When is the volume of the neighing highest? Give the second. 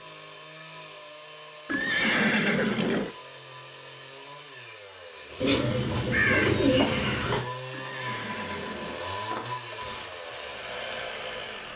2 s.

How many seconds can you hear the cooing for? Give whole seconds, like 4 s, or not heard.
2 s.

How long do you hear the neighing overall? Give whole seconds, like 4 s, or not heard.
3 s.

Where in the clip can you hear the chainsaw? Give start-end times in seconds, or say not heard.
0.0-11.7.